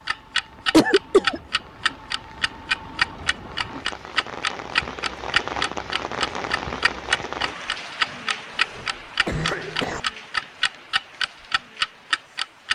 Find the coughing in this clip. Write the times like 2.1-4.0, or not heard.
0.7-1.4, 8.6-10.0.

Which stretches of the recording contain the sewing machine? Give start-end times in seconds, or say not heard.
not heard.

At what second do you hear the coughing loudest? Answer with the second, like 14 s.
1 s.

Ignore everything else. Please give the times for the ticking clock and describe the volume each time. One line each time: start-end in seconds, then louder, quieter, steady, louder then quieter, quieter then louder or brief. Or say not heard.
0.1-12.7 steady.